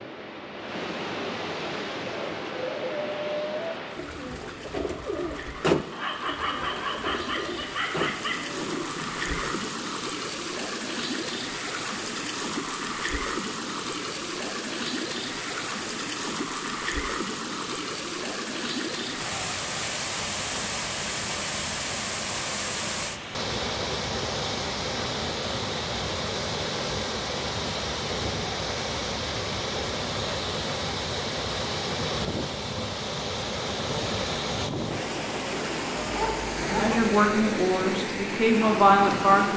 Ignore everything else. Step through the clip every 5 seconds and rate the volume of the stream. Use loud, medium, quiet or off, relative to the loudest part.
medium, medium, loud, loud, loud, loud, loud, loud.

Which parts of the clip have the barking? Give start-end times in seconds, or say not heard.
5.9-8.4, 36.0-37.0.